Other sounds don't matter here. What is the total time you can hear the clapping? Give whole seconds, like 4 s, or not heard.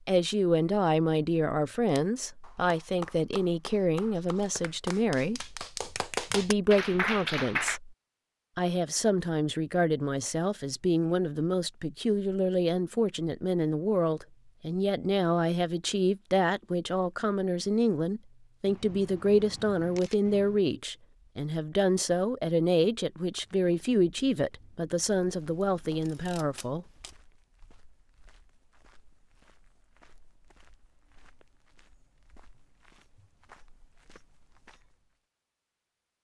6 s.